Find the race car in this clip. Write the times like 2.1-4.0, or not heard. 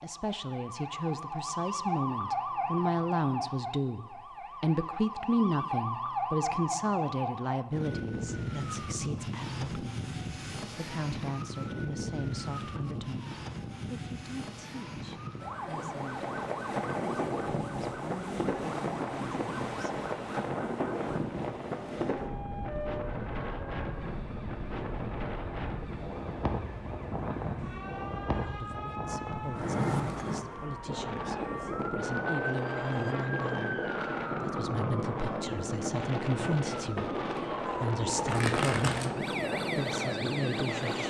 not heard.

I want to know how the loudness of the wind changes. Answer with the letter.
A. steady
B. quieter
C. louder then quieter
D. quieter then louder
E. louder
A.